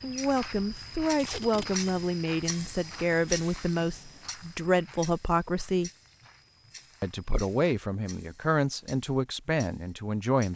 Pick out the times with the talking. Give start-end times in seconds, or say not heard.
0.0-5.9, 7.0-10.5.